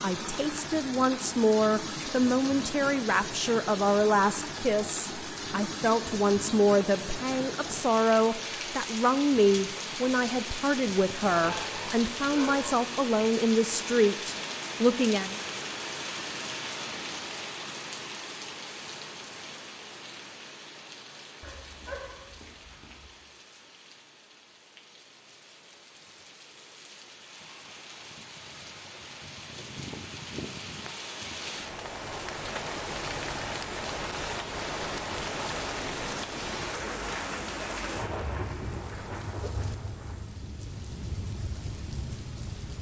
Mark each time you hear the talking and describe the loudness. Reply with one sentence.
You can hear the talking from 0.0 to 15.3 s, at a steady volume.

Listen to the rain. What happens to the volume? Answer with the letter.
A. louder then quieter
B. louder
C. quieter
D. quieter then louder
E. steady
D.